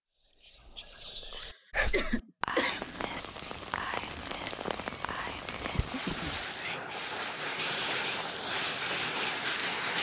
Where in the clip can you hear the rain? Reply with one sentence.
The rain can be heard from 2.6 to 9.9 s.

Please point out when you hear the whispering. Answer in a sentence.
You can hear the whispering from 0.2 to 7.0 s.